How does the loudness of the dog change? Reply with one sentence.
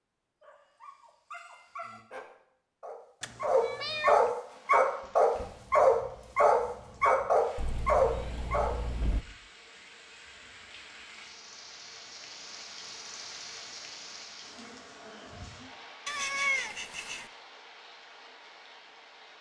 The loudness of the dog goes up.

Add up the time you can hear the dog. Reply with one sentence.
The dog can be heard for 8 seconds in total.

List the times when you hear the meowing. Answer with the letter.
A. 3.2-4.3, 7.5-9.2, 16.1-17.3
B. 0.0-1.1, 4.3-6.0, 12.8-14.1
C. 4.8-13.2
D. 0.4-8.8
A.